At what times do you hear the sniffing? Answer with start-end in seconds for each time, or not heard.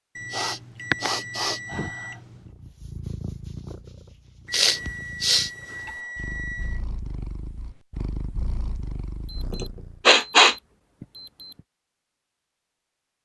0.3-1.9, 4.5-5.9, 9.6-10.6.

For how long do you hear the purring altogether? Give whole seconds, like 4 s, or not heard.
8 s.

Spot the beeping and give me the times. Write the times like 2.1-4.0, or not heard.
0.1-2.5, 4.5-6.8, 9.2-11.6.